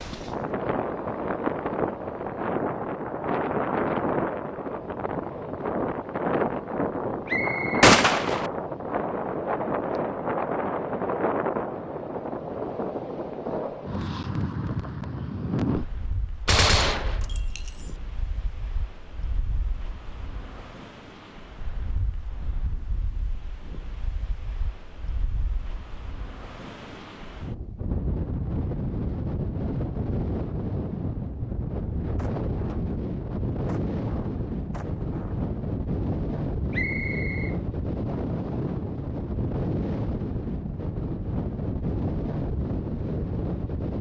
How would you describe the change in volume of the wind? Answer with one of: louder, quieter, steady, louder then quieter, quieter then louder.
quieter then louder.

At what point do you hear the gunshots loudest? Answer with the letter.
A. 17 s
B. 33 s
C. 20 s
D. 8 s
D.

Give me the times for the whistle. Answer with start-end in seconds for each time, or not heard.
7.2-7.9, 36.7-37.5.